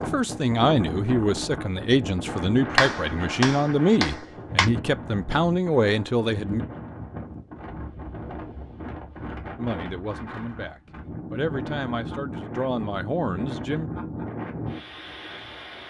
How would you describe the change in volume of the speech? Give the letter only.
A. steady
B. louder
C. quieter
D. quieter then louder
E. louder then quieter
C.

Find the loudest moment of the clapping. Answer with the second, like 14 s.
3 s.